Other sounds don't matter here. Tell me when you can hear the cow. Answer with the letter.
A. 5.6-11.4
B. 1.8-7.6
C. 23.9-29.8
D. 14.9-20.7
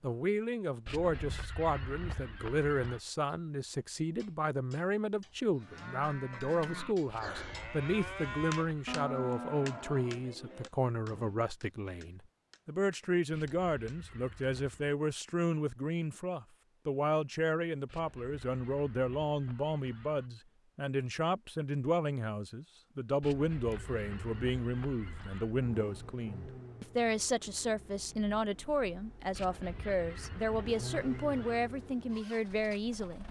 A.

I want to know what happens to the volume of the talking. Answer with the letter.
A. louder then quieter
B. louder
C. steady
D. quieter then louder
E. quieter
C.